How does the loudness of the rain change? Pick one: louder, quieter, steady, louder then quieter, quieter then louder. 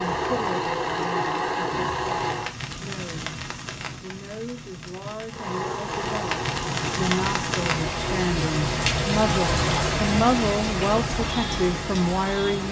louder.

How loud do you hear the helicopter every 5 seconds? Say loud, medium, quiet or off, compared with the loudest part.
loud, medium, off.